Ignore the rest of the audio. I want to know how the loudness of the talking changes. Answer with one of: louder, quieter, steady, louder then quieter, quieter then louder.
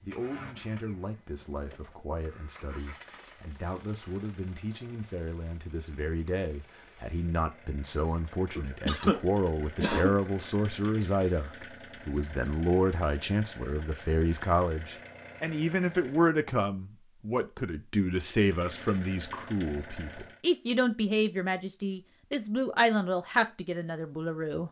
louder.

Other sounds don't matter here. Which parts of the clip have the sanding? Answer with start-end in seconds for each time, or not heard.
not heard.